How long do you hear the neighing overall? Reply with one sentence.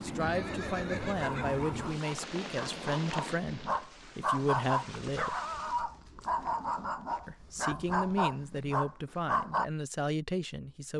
The neighing can be heard for 2 seconds in total.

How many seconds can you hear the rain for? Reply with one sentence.
The rain can be heard for 6 seconds in total.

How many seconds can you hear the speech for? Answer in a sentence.
You can hear the speech for 9 seconds altogether.